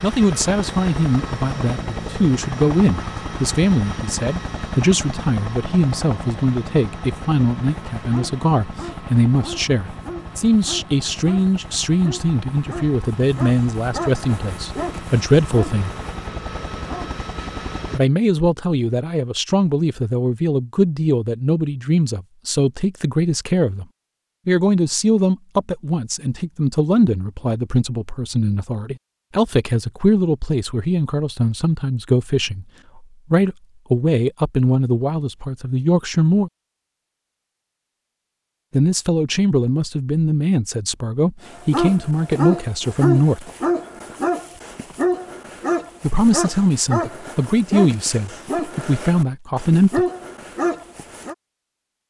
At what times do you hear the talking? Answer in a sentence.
You can hear the talking from 0.0 to 15.9 s, from 17.9 to 23.9 s, from 24.4 to 36.5 s, from 38.7 to 43.5 s and from 46.0 to 50.0 s.